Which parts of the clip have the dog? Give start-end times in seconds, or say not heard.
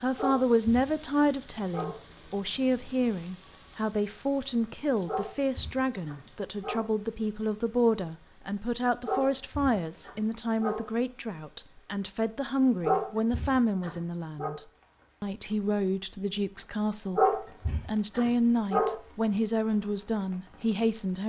0.1-1.9, 5.0-6.8, 9.1-10.8, 12.8-14.6, 17.1-18.9.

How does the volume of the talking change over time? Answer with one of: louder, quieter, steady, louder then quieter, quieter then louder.
steady.